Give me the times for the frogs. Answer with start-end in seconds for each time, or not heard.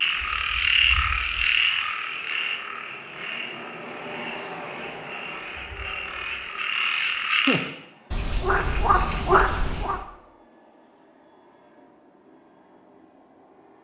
0.0-10.0.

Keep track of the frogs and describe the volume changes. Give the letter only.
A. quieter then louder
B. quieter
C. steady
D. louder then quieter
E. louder
A.